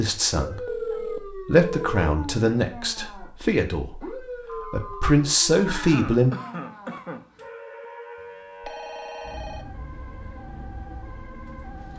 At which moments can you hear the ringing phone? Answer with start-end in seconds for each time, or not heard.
0.7-2.1, 4.5-5.2, 8.2-9.7.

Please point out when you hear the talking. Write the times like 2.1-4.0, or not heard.
0.0-6.3.